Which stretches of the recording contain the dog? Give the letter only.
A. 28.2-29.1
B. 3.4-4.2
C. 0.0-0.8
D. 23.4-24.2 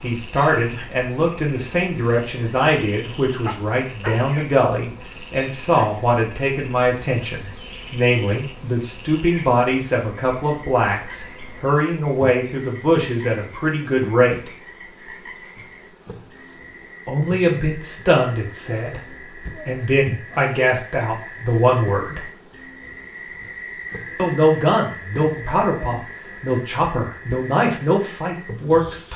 B.